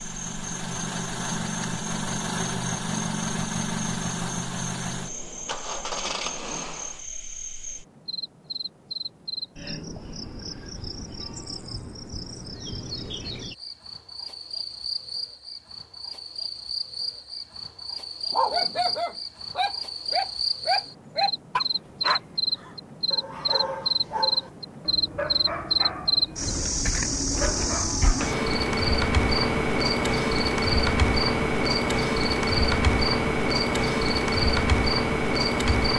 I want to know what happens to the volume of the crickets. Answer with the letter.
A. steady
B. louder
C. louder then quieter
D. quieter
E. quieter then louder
B.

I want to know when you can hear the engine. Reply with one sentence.
The engine can be heard from 0.0 to 7.0 s.